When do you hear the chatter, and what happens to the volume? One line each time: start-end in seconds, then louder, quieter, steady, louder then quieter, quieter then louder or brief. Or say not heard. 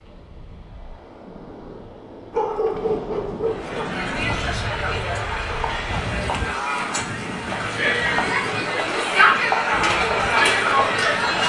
3.5-11.4 louder.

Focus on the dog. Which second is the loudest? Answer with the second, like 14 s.
3 s.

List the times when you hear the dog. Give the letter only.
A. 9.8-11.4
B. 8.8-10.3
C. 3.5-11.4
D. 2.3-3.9
D.